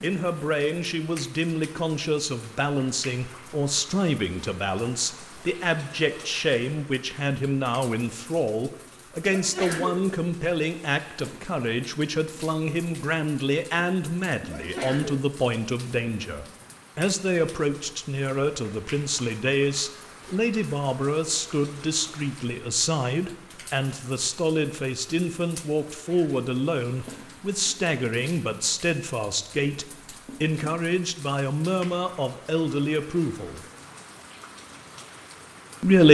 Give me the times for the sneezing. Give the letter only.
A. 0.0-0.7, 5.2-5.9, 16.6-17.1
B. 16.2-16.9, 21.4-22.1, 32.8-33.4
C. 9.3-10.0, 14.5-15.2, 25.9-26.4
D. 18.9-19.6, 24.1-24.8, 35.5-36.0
C.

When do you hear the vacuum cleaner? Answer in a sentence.
You can't hear the vacuum cleaner here.